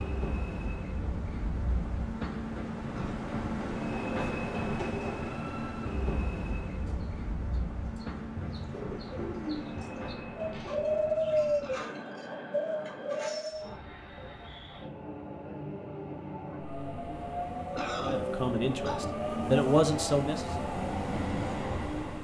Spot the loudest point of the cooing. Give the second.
11 s.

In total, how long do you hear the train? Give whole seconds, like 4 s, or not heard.
22 s.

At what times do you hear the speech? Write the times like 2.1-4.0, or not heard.
18.0-20.5.